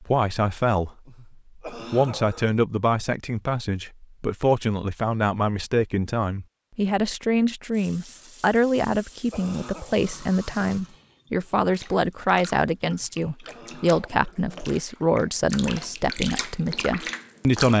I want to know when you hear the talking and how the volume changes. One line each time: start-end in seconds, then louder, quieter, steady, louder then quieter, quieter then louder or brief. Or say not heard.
0.0-0.9 brief
1.7-17.7 steady.